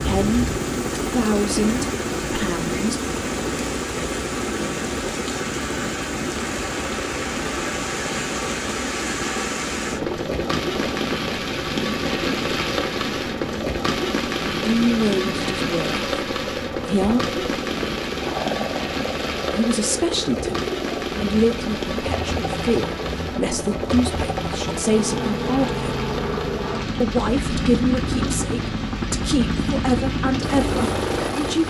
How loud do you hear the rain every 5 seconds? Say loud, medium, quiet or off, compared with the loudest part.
medium, loud, loud, loud, medium, medium, medium.